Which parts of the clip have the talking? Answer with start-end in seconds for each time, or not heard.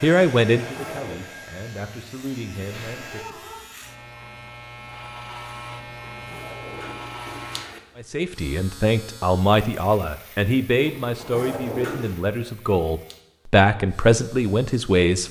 0.0-3.4, 8.0-15.2.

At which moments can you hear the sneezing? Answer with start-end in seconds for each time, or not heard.
2.7-3.6.